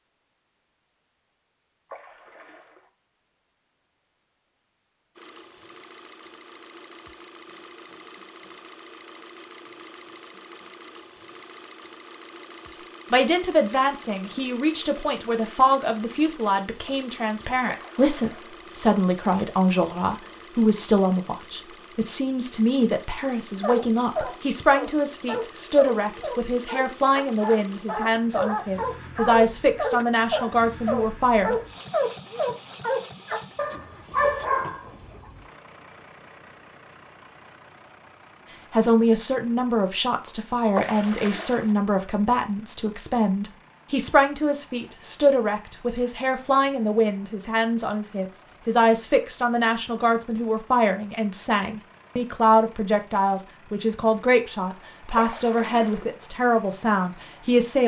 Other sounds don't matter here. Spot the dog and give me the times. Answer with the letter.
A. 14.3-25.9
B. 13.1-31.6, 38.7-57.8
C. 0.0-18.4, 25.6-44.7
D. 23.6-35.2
D.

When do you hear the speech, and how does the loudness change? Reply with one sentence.
The speech can be heard from 13.1 to 31.6 s, at a steady volume; and from 38.7 to 57.8 s, at a steady volume.